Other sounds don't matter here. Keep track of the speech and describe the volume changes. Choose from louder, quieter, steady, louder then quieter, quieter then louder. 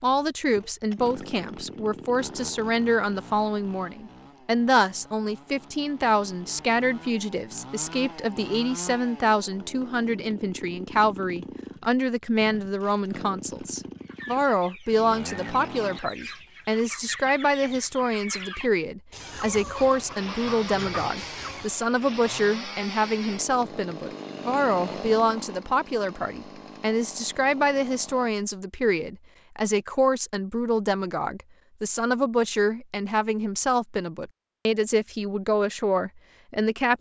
steady.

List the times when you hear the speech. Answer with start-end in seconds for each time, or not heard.
0.0-36.9.